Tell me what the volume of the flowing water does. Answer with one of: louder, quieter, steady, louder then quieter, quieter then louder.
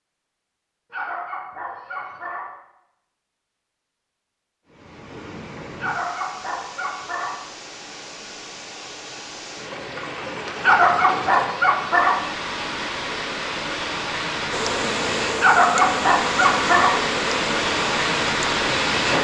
louder.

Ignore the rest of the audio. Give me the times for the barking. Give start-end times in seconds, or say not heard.
0.9-2.5, 5.8-7.4, 10.6-12.2, 15.4-17.0.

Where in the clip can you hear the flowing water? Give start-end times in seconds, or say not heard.
4.7-19.2.